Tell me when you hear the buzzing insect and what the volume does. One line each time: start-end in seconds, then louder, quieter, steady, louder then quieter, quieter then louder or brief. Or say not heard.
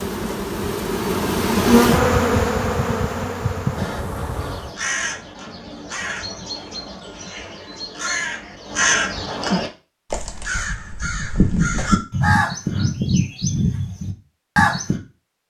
0.0-4.8 louder then quieter.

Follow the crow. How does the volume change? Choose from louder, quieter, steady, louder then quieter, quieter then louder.
louder.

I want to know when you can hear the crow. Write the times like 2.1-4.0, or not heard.
3.8-15.0.